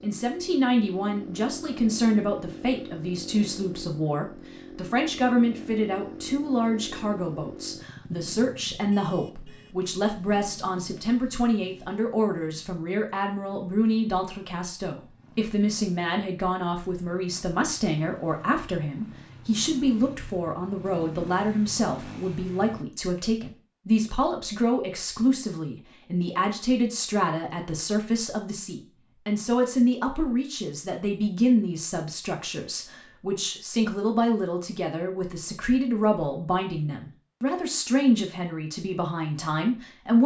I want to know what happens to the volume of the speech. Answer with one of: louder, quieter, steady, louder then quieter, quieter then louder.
steady.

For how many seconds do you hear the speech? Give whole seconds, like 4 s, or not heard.
40 s.